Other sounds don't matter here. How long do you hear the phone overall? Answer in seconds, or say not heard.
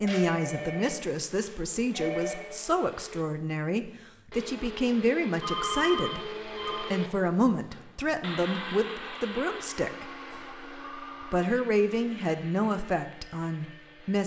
5 s.